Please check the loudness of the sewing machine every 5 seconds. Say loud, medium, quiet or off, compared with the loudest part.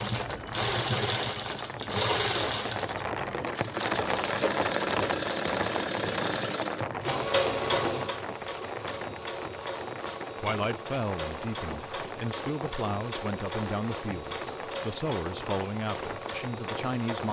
loud, loud, medium, medium.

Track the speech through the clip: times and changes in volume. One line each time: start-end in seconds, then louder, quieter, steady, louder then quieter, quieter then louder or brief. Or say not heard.
10.4-17.2 steady.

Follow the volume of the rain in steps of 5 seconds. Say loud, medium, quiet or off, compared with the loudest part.
loud, loud, medium, medium.